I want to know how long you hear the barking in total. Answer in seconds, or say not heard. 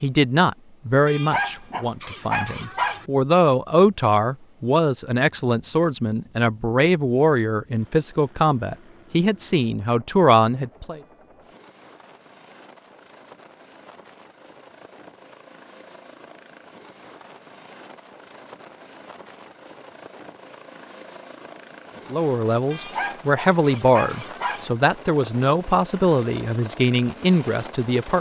4 s.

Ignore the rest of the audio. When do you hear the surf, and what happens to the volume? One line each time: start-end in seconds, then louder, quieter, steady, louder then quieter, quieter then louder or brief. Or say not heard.
not heard.